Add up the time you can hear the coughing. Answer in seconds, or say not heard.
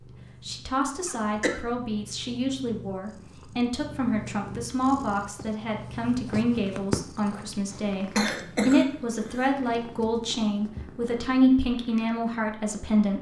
2 s.